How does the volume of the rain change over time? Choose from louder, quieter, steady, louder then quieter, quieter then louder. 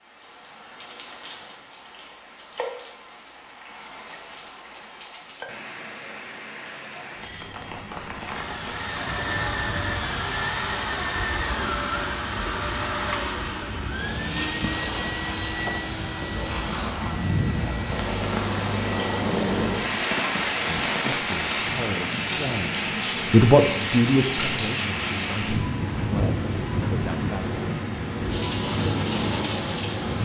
louder.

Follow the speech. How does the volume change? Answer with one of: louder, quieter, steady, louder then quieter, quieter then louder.
louder then quieter.